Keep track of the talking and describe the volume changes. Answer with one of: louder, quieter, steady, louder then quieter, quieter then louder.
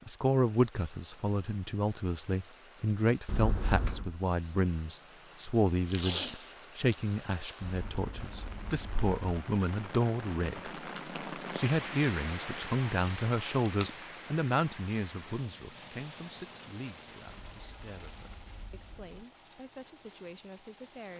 quieter.